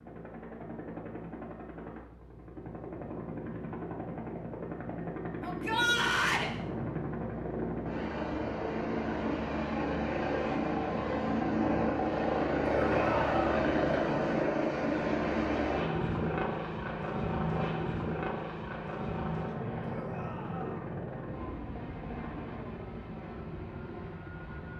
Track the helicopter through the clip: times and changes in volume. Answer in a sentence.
The helicopter can be heard from 0.0 to 24.7 s, getting louder then quieter.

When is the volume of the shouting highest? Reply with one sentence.
The volume of the shouting peaks at 6 seconds.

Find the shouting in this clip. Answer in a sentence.
The shouting can be heard from 5.4 to 6.5 s, from 12.8 to 13.4 s and from 19.9 to 20.9 s.